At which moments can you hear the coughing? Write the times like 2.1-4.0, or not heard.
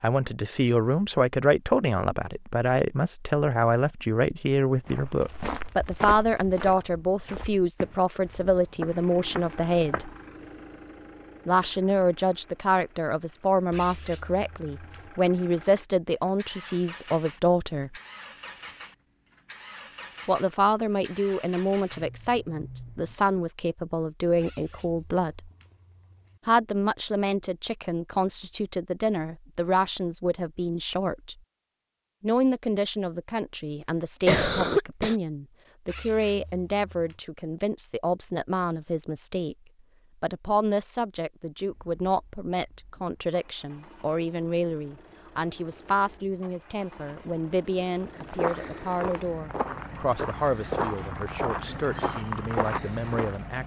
34.2-35.1.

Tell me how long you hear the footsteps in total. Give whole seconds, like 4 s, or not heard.
11 s.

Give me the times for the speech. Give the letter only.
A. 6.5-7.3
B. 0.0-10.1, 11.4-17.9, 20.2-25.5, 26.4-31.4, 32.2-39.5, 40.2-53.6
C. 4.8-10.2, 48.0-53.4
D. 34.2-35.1
B.